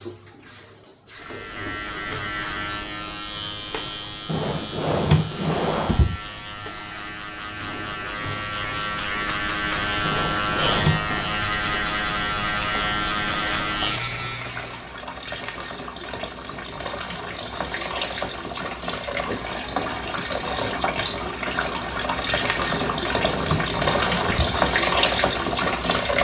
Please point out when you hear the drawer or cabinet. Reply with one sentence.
You can hear the drawer or cabinet from 4.2 to 6.2 s, from 10.0 to 11.2 s and from 22.6 to 24.6 s.